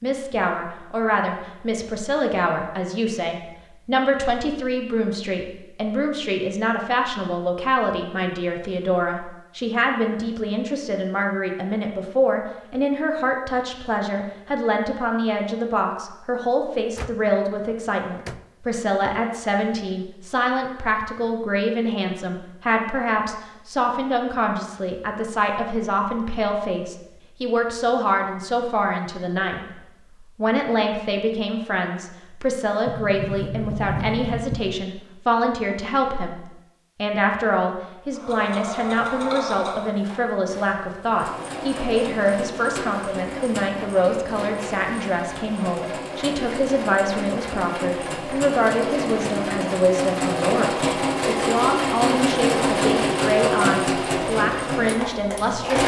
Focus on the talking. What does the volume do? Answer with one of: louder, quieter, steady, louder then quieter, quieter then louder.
steady.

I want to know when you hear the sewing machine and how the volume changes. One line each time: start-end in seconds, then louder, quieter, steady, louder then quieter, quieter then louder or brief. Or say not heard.
38.1-55.8 louder.